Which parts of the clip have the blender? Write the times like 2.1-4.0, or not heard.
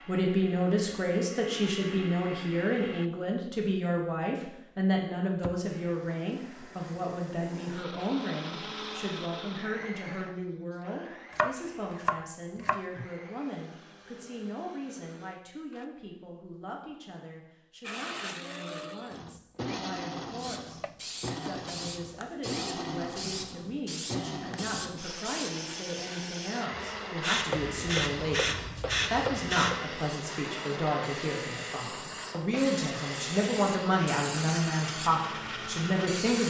0.0-3.1, 5.7-15.9, 17.8-36.4.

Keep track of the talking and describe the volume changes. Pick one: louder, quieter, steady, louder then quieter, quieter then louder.
quieter then louder.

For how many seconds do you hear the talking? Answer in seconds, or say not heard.
36 s.